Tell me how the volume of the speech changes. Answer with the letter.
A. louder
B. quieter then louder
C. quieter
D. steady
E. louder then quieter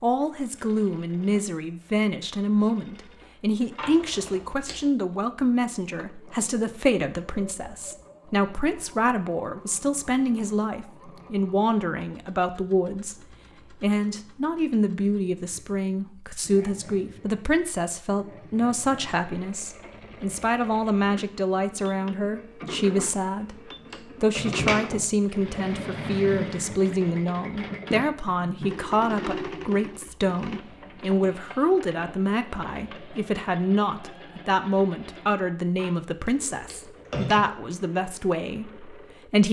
D.